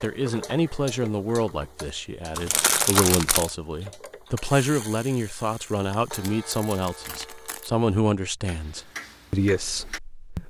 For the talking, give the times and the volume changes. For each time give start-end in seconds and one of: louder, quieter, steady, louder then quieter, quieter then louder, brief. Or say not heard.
0.0-10.4 steady.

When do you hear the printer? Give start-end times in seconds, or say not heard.
not heard.